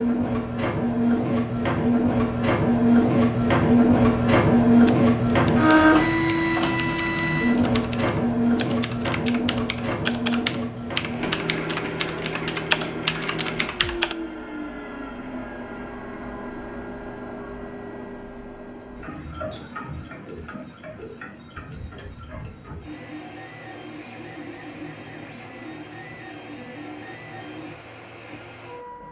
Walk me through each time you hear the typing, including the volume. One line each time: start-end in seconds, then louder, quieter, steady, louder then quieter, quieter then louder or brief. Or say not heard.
4.8-14.2 louder.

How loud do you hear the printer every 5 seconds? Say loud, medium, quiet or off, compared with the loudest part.
loud, loud, medium, quiet, quiet, quiet.